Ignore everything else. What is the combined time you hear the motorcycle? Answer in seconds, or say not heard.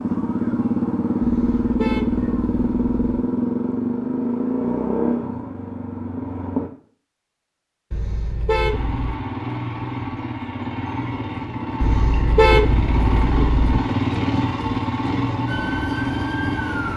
15 s.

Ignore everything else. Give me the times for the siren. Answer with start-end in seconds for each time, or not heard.
15.4-16.9.